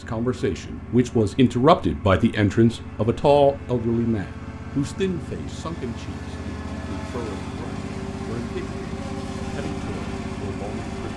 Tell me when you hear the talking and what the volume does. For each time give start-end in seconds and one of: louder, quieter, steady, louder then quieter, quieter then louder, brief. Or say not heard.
0.0-11.1 quieter.